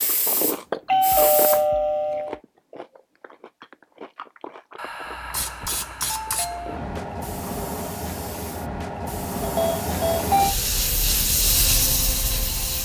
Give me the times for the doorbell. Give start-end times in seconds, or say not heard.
0.8-2.4, 4.8-6.8, 9.4-10.6.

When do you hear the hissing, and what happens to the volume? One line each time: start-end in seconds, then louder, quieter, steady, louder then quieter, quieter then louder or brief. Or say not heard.
0.0-1.6 brief
5.0-12.7 louder.